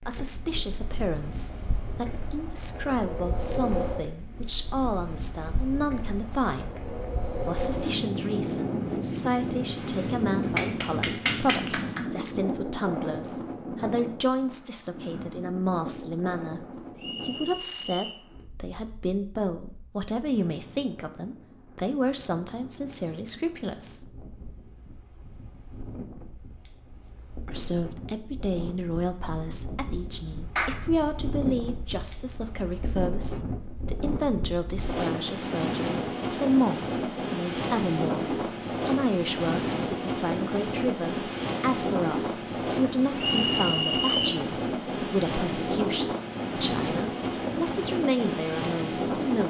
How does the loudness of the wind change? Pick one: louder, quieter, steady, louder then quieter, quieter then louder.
quieter then louder.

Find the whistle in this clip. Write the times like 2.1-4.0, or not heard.
16.9-18.2, 43.1-44.4.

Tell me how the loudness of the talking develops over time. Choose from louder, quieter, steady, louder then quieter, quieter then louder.
steady.